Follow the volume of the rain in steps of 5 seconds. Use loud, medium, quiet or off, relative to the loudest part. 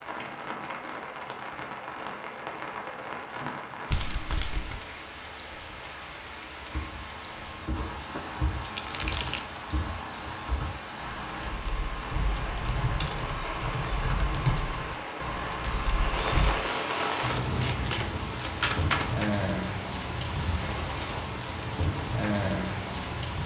medium, medium, medium, loud, loud.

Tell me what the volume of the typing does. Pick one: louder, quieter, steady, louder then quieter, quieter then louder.
louder.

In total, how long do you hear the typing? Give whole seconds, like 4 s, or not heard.
10 s.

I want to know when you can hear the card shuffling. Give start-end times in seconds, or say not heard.
3.9-4.8, 8.1-9.5, 17.2-19.3.